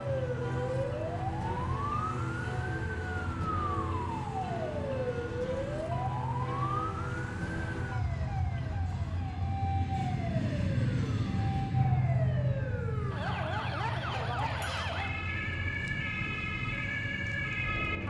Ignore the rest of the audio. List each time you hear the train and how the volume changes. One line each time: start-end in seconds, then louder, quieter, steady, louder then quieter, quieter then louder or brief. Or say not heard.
0.0-18.0 louder then quieter.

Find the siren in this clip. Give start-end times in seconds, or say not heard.
0.0-18.0.